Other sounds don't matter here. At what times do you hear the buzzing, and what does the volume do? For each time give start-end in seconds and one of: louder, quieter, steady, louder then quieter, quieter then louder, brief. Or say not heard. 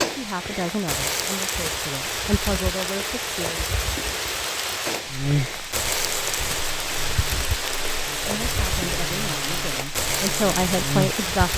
5.0-11.2 louder.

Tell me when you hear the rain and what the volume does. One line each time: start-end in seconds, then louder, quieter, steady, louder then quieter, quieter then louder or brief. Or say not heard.
0.0-11.5 steady.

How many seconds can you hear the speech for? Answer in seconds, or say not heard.
7 s.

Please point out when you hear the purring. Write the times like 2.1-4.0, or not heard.
not heard.